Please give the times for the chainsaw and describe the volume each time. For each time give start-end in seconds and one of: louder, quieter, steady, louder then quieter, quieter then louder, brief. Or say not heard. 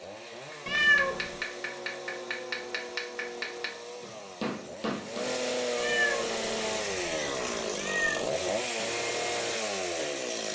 0.0-10.5 louder.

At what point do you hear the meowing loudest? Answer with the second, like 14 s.
1 s.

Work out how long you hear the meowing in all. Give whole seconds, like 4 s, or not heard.
3 s.